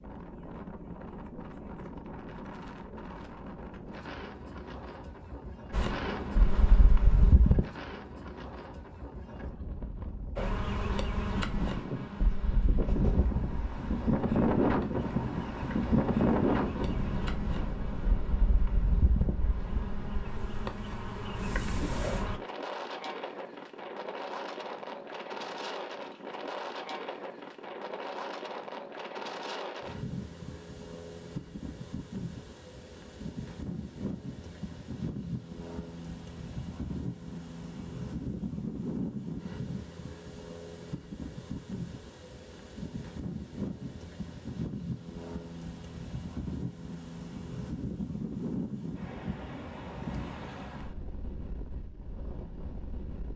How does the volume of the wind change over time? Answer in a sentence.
The loudness of the wind goes up, then down.